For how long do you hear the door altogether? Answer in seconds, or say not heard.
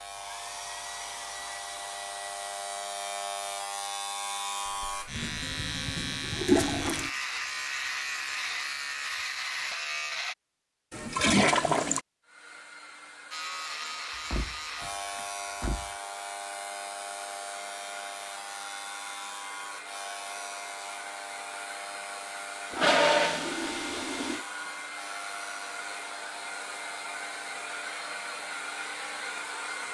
2 s.